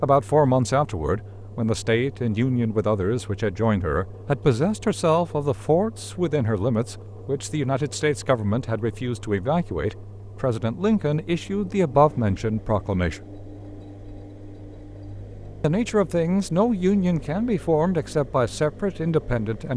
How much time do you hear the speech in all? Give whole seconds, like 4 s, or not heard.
17 s.